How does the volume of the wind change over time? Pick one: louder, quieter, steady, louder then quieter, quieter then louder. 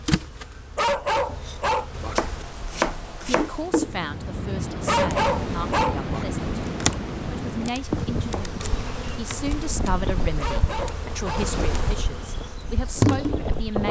quieter.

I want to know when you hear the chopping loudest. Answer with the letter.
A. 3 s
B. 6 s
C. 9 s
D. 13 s
A.